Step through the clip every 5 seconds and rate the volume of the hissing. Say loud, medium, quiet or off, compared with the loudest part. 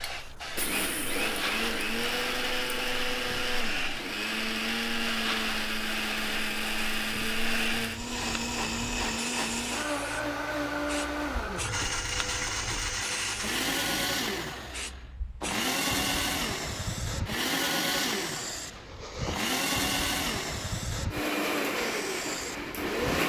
loud, loud, medium, loud, loud.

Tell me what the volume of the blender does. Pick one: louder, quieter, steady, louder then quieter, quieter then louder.
steady.